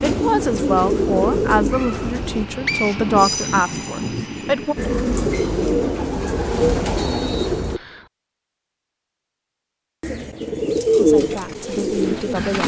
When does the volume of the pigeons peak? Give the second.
11 s.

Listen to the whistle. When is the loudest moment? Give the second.
3 s.